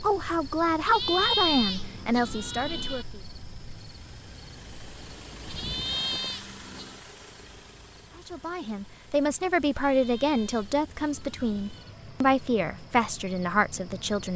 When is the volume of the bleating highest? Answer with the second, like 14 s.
1 s.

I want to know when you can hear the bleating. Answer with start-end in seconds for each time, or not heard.
0.8-3.0, 5.5-7.0, 9.8-11.9.